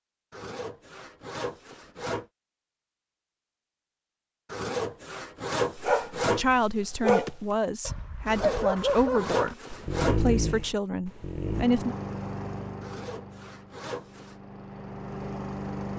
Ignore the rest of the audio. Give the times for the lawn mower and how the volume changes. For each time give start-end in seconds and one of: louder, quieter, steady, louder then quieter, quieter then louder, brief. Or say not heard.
11.4-15.9 quieter then louder.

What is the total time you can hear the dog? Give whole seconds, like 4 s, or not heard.
6 s.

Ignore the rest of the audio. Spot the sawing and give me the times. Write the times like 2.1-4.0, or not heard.
0.3-2.2, 4.5-6.5, 8.2-10.2, 12.8-14.3.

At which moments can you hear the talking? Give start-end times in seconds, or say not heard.
6.2-11.9.